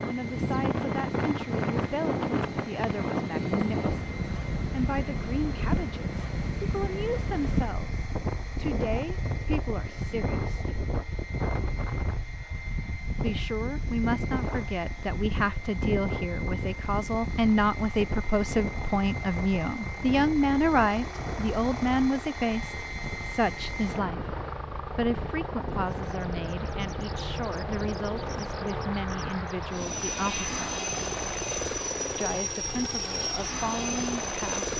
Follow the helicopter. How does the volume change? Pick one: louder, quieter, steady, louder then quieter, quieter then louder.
louder.